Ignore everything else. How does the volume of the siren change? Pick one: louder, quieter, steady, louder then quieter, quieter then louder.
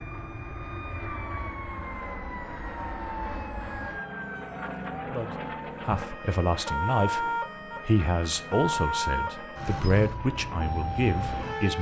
louder.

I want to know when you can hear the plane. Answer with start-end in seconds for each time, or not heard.
0.0-11.7.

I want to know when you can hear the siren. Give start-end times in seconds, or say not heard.
0.0-11.7.